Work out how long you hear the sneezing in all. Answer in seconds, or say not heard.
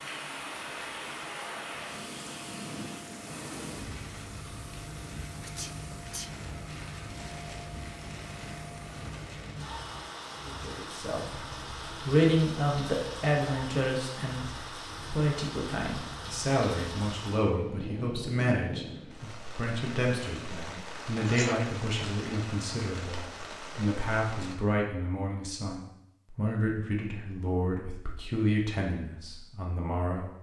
2 s.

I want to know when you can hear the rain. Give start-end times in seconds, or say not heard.
0.0-24.6.